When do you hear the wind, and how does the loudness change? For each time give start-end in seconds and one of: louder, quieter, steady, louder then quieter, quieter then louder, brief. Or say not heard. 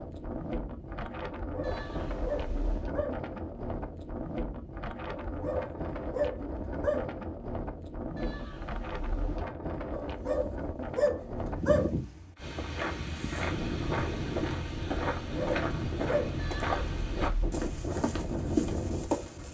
0.0-19.4 steady.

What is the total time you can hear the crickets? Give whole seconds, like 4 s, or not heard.
not heard.